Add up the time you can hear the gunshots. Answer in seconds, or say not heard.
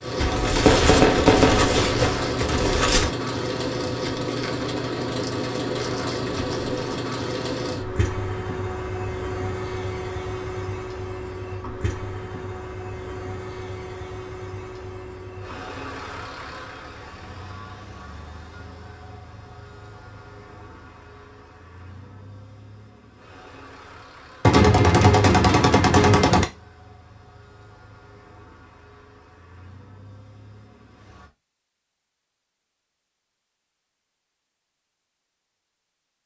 5 s.